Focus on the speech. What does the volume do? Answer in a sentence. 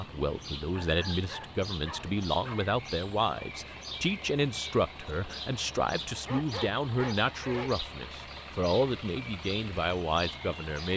The volume of the speech stays about the same.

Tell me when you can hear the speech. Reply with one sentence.
You can hear the speech from 0.0 to 10.9 s.